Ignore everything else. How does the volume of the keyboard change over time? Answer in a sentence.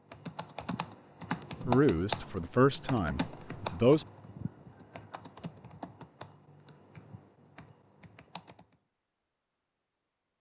The volume of the keyboard goes down.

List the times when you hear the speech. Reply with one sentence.
The speech can be heard from 1.6 to 4.0 s.